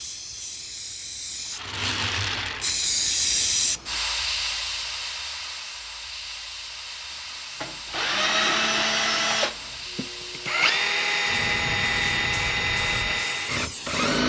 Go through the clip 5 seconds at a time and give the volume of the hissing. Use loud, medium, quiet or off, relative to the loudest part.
loud, medium, medium.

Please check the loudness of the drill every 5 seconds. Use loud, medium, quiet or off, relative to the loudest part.
off, loud, loud.